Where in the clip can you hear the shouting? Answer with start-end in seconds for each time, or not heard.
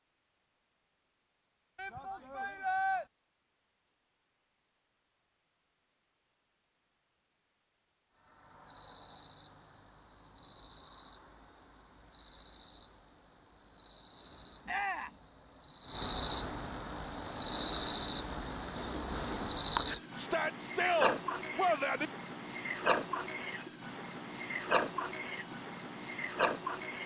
1.8-3.0, 14.7-15.2, 20.1-22.1.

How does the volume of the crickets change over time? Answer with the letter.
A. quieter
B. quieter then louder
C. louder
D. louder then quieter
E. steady
C.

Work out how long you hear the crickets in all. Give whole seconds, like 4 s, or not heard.
19 s.